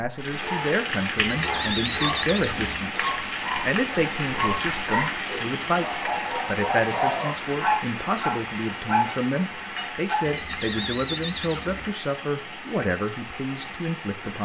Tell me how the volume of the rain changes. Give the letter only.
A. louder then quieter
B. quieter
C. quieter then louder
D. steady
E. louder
B.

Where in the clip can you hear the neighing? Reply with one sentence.
The neighing can be heard from 1.1 to 2.9 s and from 10.2 to 11.9 s.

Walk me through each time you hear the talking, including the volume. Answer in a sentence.
The talking can be heard from 0.0 to 14.3 s, at a steady volume.